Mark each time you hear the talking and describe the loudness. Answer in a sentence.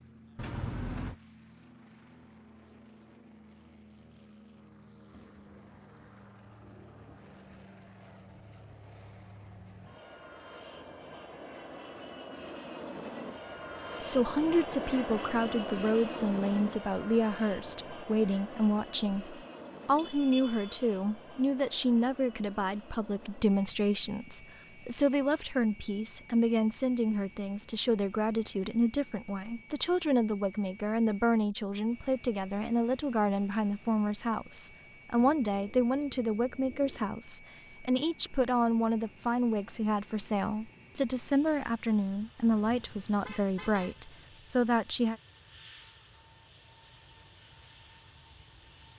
The talking can be heard from 14.1 to 45.1 s, at a steady volume.